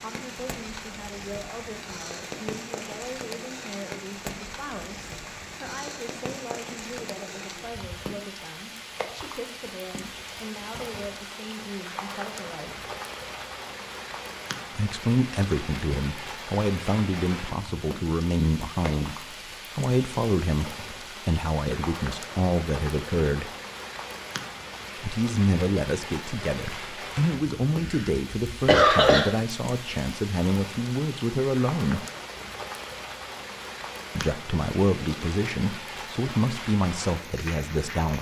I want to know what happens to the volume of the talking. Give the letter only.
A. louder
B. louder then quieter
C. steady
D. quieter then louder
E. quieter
A.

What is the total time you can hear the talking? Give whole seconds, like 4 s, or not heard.
33 s.